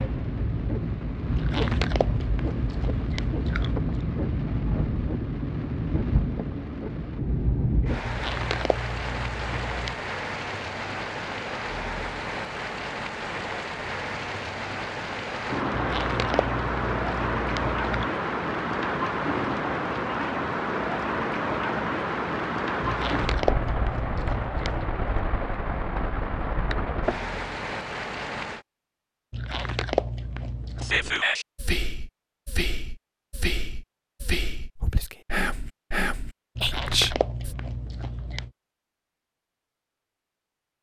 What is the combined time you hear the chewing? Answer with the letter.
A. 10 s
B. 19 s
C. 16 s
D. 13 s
D.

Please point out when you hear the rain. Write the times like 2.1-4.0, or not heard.
0.0-28.6.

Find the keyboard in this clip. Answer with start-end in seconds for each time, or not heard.
not heard.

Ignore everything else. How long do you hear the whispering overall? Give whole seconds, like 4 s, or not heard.
7 s.